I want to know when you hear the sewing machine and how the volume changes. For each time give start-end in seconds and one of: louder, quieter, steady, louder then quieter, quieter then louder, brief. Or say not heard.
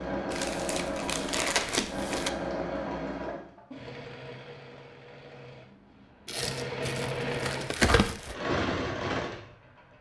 0.0-9.9 quieter then louder.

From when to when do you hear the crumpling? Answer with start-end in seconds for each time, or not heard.
0.3-2.3, 6.2-8.3.